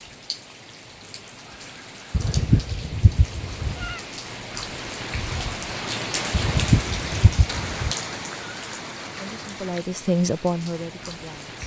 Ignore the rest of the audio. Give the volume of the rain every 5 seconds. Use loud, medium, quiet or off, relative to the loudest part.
medium, loud, medium.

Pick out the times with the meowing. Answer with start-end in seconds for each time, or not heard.
2.1-4.0, 6.3-8.0.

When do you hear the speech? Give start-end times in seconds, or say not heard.
9.2-11.6.